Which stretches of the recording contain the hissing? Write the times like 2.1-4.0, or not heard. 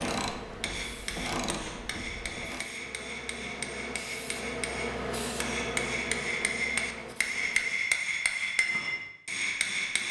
0.1-7.8.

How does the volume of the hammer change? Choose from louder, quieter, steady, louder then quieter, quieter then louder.
louder.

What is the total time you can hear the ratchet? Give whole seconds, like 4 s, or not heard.
3 s.